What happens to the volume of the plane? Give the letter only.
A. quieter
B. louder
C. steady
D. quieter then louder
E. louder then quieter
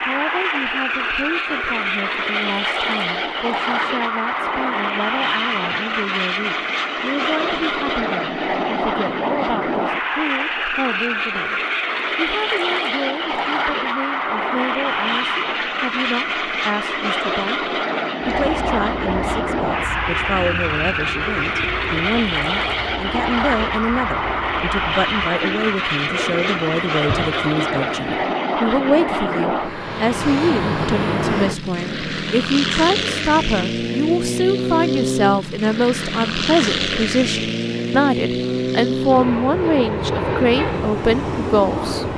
C.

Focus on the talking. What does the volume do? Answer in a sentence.
The loudness of the talking goes up.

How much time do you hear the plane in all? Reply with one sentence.
You can hear the plane for 42 seconds altogether.